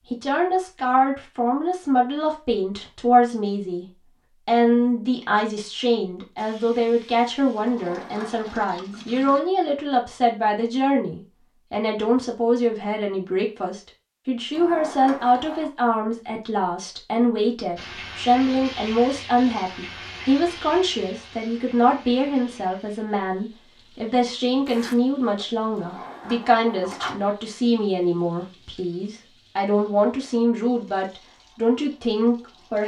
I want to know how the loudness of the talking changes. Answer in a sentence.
The loudness of the talking stays about the same.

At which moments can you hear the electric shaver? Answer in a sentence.
You can't hear the electric shaver here.